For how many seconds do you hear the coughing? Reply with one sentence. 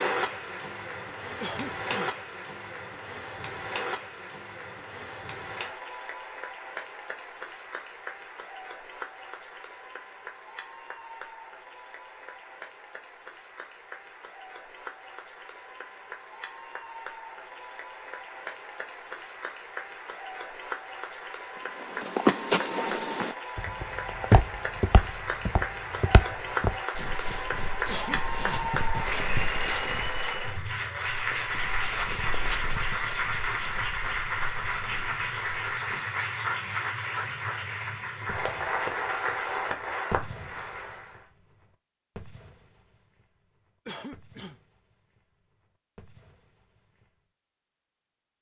The coughing can be heard for 2 seconds in total.